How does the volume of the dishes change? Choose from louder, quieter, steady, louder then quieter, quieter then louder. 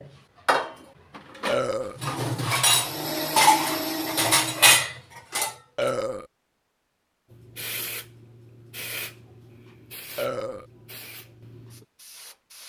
louder.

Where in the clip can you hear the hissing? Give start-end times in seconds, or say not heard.
7.3-12.6.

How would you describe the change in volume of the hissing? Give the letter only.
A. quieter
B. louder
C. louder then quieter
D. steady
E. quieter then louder
A.